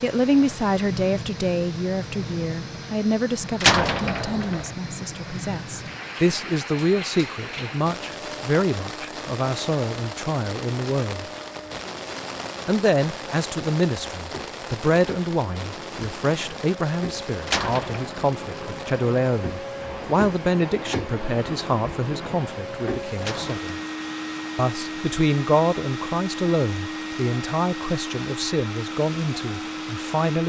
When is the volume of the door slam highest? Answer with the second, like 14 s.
4 s.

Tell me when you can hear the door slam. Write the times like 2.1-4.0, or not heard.
3.6-4.7, 17.4-18.1, 23.2-23.9.